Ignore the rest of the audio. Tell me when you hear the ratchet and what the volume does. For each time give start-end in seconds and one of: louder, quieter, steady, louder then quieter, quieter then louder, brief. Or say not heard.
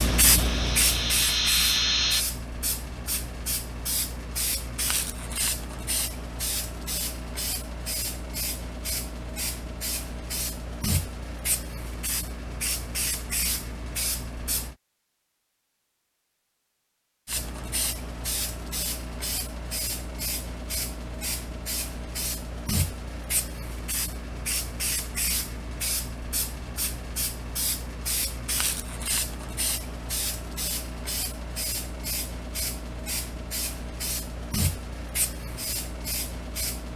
not heard.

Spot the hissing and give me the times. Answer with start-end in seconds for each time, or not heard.
0.0-14.8, 17.2-36.9.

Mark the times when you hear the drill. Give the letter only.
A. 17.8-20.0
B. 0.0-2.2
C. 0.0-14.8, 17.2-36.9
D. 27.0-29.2
B.